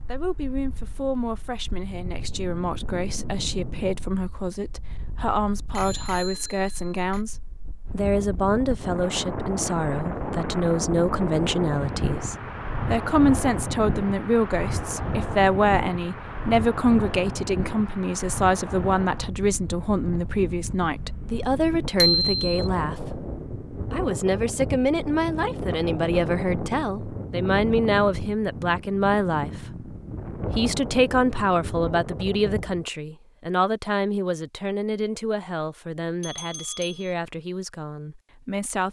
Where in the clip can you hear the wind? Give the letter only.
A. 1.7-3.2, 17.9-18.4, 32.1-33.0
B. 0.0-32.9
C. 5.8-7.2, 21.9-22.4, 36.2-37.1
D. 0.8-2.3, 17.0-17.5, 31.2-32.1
B.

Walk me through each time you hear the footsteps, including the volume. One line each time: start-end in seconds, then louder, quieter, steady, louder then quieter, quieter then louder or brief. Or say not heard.
not heard.